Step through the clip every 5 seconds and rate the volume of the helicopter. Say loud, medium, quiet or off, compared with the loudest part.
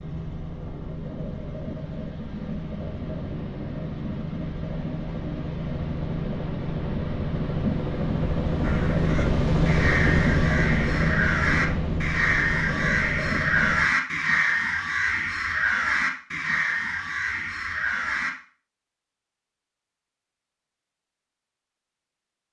medium, loud, loud, off, off.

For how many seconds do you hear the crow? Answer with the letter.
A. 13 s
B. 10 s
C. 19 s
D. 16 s
B.